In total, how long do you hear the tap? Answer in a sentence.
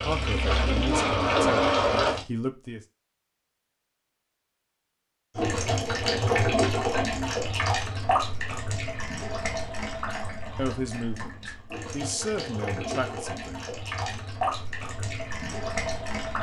You can hear the tap for 13 seconds altogether.